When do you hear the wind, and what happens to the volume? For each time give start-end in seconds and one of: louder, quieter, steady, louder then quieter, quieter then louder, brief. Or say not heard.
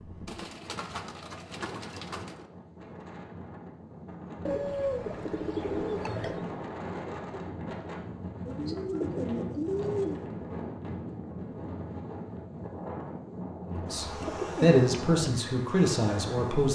0.0-16.7 louder.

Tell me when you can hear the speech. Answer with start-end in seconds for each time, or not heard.
13.7-16.7.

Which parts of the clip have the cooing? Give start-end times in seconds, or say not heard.
0.2-2.4, 4.5-6.5, 8.4-10.3, 14.2-15.3.